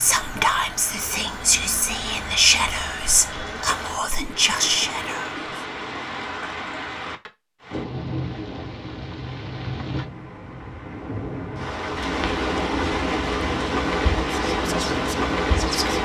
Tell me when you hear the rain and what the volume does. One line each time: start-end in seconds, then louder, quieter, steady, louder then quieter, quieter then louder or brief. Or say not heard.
0.0-16.0 louder.